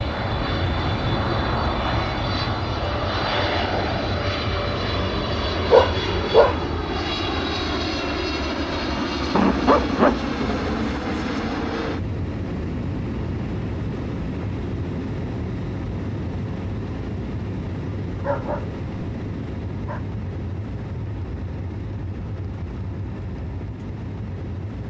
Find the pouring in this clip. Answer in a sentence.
The pouring can't be heard in this clip.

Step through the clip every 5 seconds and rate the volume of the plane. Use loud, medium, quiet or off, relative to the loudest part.
loud, loud, loud, medium, medium.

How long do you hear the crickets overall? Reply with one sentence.
The crickets can't be heard in this clip.